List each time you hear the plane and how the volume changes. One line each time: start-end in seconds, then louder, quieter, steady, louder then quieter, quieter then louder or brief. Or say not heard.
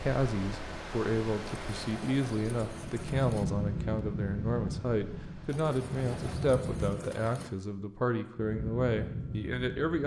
2.9-7.1 quieter then louder
8.3-10.0 brief.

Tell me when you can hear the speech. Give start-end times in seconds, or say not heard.
0.0-10.0.